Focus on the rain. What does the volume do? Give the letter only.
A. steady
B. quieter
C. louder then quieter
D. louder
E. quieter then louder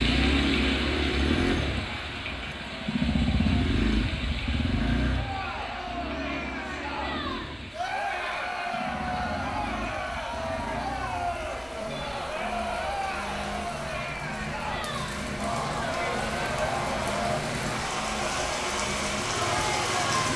E.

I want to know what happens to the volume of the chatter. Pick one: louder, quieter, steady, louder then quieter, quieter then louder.
louder.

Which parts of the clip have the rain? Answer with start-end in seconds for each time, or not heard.
0.0-20.3.